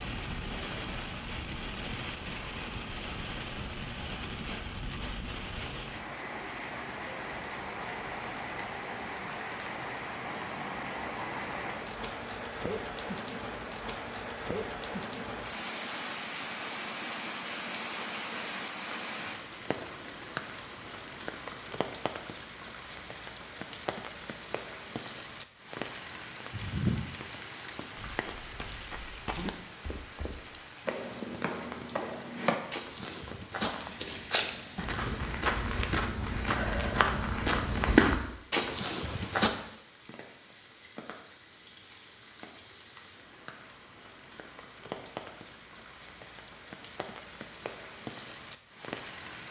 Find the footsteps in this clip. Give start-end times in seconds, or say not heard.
27.9-39.5.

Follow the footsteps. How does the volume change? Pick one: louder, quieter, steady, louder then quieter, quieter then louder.
louder.